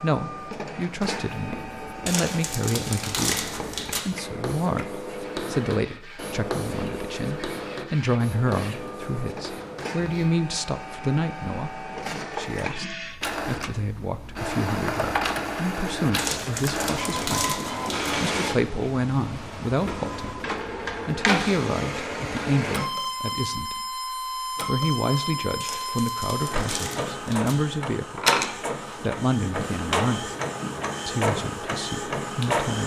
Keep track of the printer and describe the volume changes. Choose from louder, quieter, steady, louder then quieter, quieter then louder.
louder.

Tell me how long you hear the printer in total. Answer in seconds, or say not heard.
33 s.